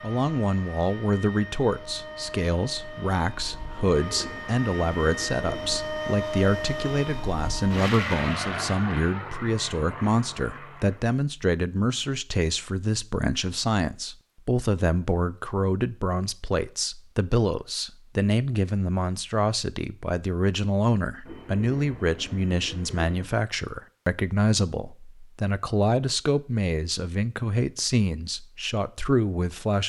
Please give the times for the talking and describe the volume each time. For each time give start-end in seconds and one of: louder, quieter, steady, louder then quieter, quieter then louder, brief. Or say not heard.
0.0-29.8 steady.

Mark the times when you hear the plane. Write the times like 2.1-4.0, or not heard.
0.0-11.2.